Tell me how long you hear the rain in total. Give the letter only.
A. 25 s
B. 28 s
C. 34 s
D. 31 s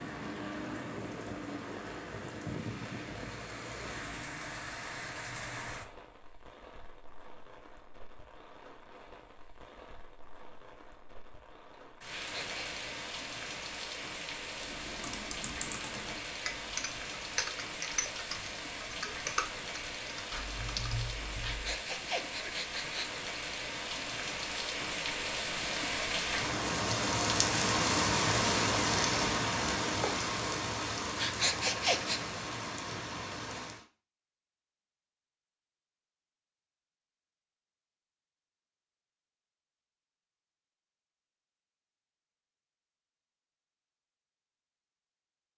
C.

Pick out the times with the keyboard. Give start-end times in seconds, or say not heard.
14.6-21.8.